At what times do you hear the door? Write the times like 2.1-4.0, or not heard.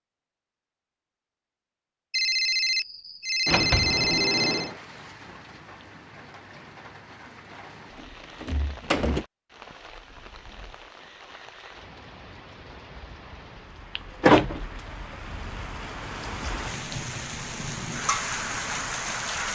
3.5-4.8, 8.4-9.2, 13.9-14.6.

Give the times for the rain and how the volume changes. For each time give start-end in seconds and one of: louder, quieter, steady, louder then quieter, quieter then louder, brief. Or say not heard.
4.5-19.5 louder.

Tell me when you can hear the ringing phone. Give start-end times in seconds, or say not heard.
2.1-4.7.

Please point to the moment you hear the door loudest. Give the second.
14 s.